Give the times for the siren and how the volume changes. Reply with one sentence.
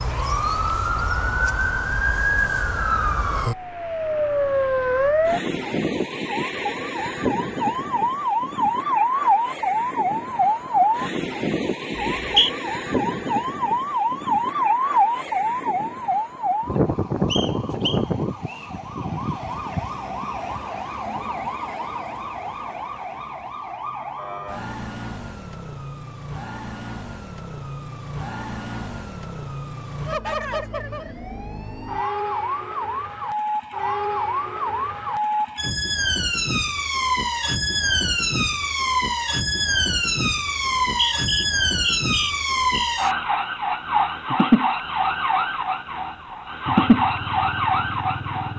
You can hear the siren from 0.0 to 48.5 s, getting quieter then louder.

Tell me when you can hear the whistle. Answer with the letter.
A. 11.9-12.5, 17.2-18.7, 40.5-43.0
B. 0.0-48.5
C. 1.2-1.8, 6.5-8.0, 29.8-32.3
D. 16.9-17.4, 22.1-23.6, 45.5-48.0
A.